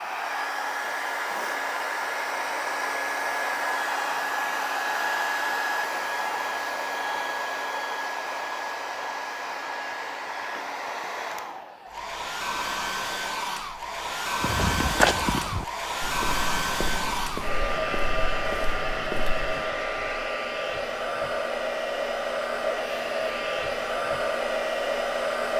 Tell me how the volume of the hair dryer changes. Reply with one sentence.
The volume of the hair dryer stays about the same.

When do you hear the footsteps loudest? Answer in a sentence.
The volume of the footsteps peaks at 15 seconds.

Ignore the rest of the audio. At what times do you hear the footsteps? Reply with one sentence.
You can hear the footsteps from 14.4 to 19.7 s.